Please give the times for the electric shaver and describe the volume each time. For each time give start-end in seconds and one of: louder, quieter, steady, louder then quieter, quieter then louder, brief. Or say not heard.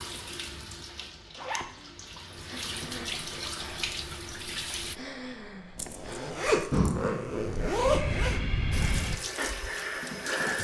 not heard.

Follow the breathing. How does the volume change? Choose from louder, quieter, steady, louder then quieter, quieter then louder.
louder.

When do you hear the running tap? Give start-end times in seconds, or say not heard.
0.0-5.0, 8.7-10.5.